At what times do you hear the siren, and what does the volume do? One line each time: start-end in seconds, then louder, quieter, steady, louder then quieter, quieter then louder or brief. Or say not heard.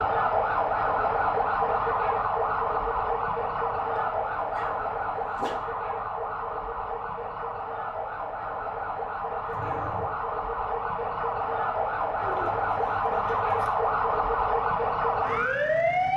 0.0-16.1 quieter then louder.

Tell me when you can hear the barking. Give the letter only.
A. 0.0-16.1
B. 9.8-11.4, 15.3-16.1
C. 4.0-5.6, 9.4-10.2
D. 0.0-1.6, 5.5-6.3
C.